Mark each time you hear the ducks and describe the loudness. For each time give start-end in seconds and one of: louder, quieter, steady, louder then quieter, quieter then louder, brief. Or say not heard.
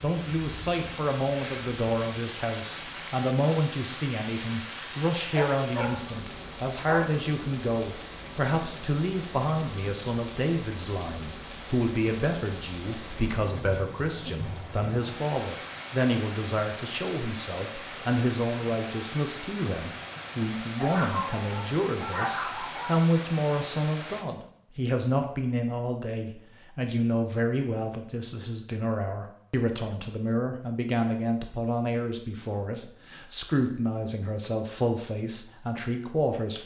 not heard.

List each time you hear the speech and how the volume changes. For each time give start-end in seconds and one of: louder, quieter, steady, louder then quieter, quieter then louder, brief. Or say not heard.
0.0-36.6 steady.